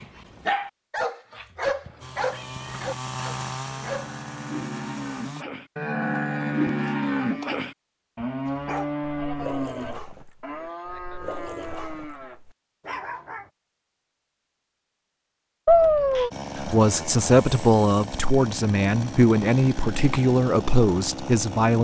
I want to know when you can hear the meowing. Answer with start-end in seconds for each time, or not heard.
1.9-2.9, 15.7-16.3.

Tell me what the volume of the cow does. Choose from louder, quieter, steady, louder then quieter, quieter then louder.
louder then quieter.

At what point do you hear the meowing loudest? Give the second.
16 s.